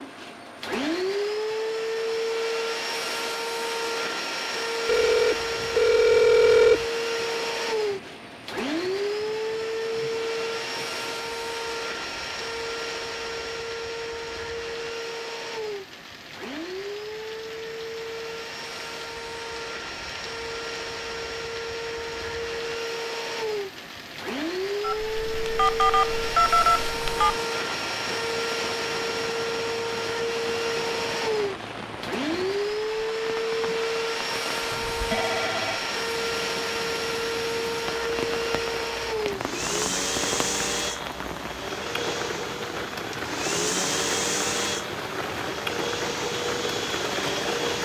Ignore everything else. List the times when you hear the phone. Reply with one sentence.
The phone can be heard from 4.8 to 6.8 s, from 24.8 to 27.4 s and from 34.7 to 35.8 s.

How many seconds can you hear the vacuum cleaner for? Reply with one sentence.
The vacuum cleaner can be heard for 48 seconds in total.